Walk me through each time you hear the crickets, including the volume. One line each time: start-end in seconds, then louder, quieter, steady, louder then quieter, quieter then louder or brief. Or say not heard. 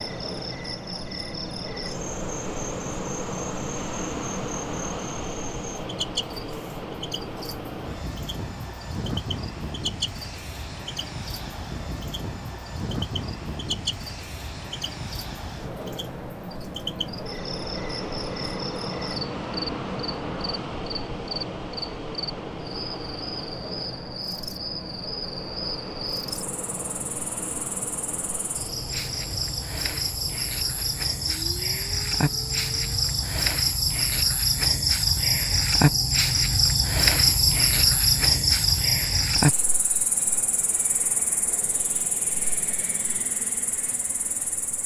0.0-44.8 louder.